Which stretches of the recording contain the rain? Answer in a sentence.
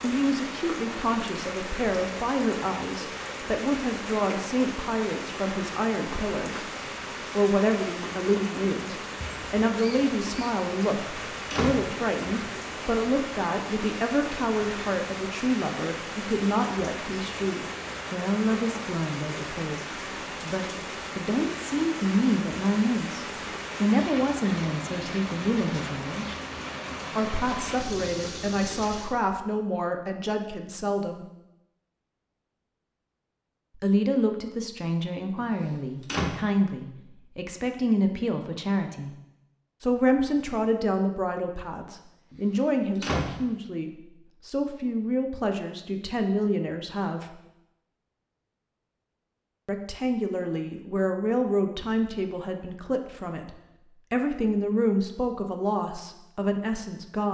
The rain can be heard from 0.0 to 29.2 s.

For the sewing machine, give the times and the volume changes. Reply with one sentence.
You can't hear the sewing machine here.